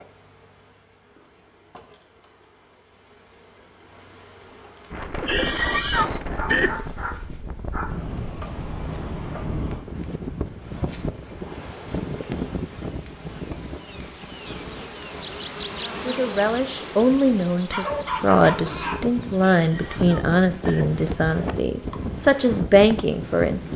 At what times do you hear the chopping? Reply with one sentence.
The chopping can't be heard in this clip.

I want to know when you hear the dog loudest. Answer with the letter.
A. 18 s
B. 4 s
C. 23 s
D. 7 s
A.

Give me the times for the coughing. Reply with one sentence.
You can hear the coughing from 5.2 to 6.8 s and from 19.5 to 20.9 s.